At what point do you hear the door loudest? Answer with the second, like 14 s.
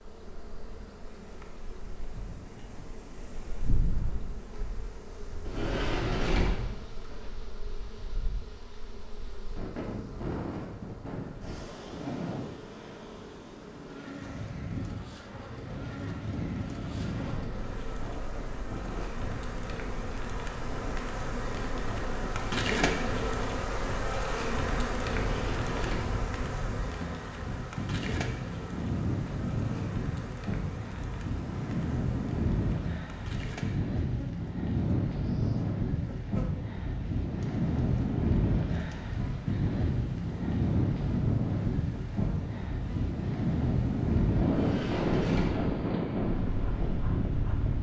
6 s.